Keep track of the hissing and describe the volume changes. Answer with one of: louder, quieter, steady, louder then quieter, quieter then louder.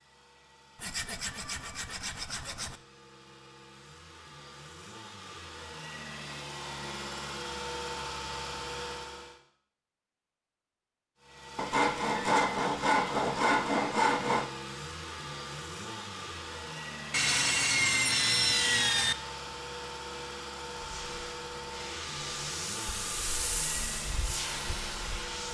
louder.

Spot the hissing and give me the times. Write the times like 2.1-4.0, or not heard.
20.8-25.5.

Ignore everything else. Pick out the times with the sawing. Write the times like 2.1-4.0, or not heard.
0.8-2.8, 11.6-14.5, 17.1-19.1.